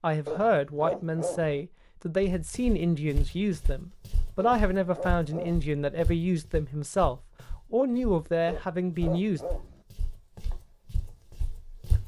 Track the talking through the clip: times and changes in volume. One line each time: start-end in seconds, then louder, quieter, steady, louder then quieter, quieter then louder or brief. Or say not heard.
0.0-9.4 steady.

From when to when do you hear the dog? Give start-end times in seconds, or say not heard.
0.2-1.6, 4.4-5.7, 8.4-9.8.